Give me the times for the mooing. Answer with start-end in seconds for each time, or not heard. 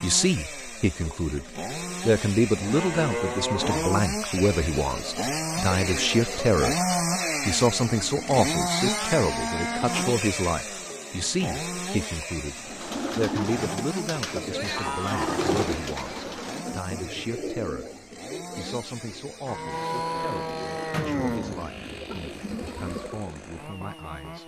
2.5-4.0, 8.7-10.1, 14.3-16.2, 19.4-21.8.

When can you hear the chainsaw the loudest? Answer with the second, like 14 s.
7 s.